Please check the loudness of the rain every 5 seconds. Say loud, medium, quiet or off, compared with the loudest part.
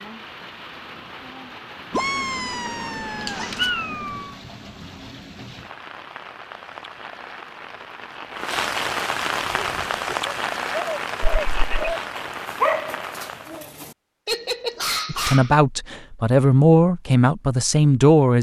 medium, loud, loud, off.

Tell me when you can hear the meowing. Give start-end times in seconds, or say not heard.
1.9-4.3, 11.2-11.9.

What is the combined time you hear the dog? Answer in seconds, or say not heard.
7 s.